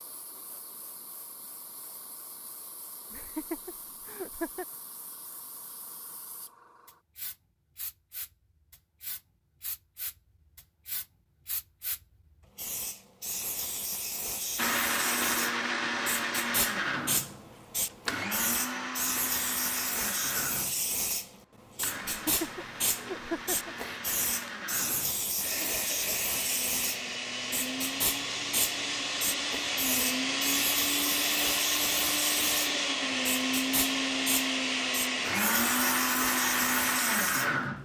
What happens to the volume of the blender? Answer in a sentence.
The loudness of the blender goes down, then up.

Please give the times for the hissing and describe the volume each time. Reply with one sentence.
The hissing can be heard from 0.0 to 37.5 s, getting louder.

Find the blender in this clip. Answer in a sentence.
You can hear the blender from 14.6 to 37.8 s.